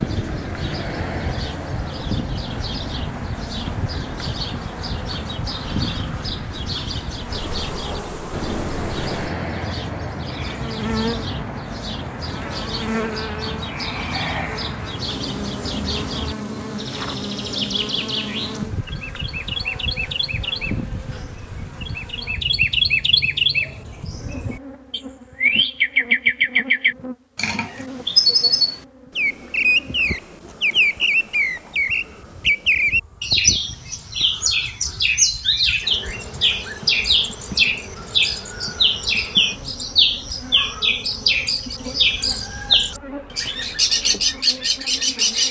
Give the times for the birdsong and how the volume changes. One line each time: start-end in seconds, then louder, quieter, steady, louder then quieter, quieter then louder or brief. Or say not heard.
0.0-45.4 louder.